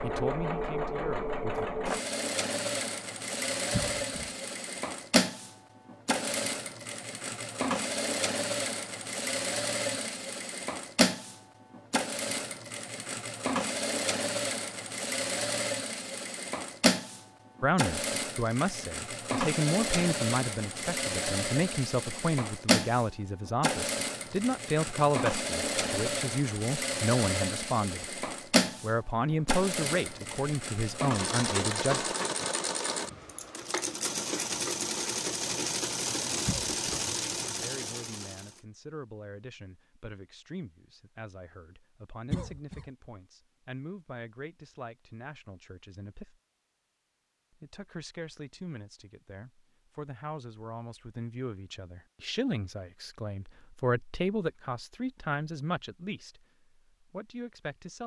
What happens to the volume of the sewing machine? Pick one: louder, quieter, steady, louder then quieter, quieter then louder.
steady.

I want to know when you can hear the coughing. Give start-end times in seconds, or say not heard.
3.7-4.3, 36.5-37.0, 42.3-42.9.